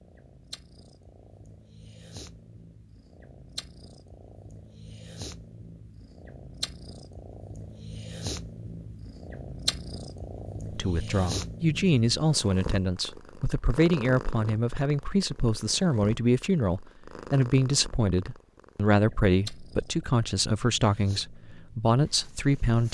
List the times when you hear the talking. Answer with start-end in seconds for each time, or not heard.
10.7-22.8.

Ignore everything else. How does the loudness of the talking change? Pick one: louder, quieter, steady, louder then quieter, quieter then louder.
steady.